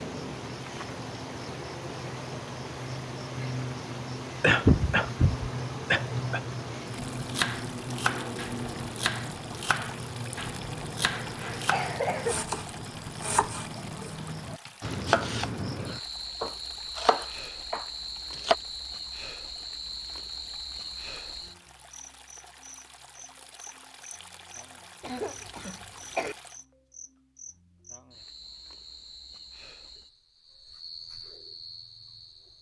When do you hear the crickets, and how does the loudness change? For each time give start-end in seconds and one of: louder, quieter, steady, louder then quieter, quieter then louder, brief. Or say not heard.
0.0-32.5 quieter.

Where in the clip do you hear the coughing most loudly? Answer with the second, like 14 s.
5 s.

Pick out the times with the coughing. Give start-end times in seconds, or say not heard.
4.4-6.4, 11.2-12.3, 25.0-26.4.